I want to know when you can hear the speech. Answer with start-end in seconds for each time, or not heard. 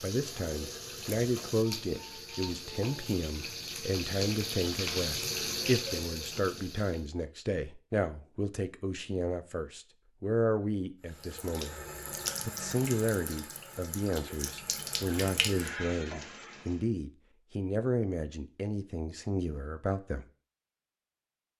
0.0-11.8, 12.4-20.2.